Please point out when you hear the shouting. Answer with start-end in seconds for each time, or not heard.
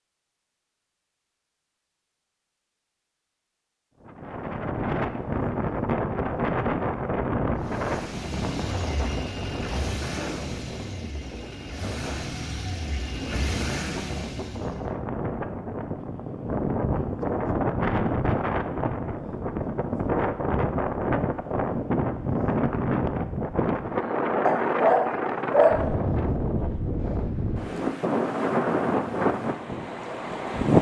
not heard.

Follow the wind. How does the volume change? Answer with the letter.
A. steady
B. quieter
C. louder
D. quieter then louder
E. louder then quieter
D.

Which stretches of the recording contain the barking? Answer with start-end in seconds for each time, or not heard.
24.4-25.9.